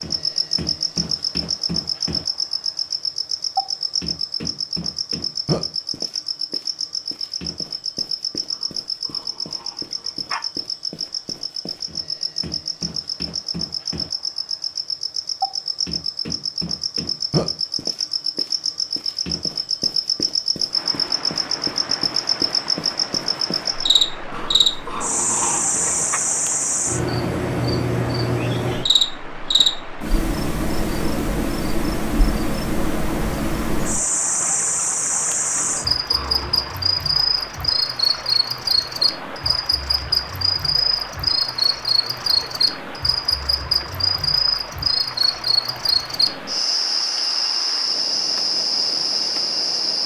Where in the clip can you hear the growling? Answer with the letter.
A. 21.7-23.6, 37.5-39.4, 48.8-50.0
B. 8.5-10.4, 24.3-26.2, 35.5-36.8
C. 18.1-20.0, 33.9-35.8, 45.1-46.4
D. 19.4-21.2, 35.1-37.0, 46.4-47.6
B.